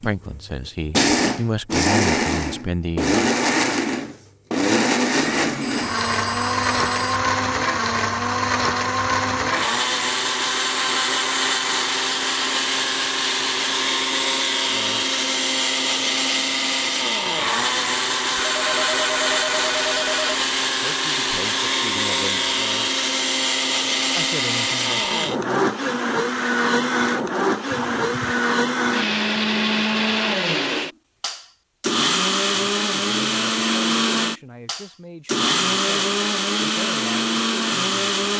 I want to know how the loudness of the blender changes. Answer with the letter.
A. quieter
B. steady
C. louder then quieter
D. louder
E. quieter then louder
B.